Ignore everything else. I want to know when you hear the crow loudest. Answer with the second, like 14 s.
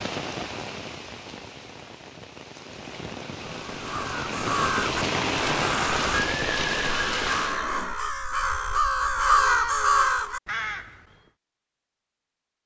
9 s.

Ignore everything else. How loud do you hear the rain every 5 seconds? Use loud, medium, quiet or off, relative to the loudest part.
medium, loud, off.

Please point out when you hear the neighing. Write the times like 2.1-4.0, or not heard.
6.2-8.0.